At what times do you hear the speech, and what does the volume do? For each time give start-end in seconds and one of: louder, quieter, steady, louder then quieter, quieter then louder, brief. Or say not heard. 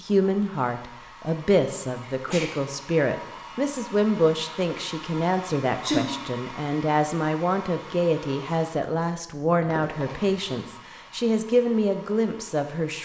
0.0-13.0 steady.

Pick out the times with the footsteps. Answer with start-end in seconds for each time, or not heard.
not heard.